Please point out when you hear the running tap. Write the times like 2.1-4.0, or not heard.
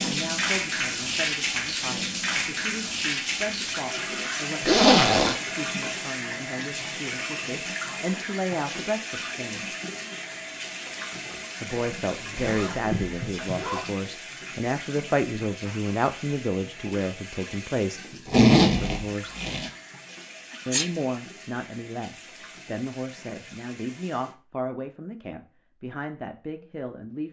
0.0-24.4.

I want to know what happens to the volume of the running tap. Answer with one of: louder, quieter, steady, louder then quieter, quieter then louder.
quieter.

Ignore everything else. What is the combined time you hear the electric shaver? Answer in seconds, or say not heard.
not heard.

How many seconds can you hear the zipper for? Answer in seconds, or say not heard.
4 s.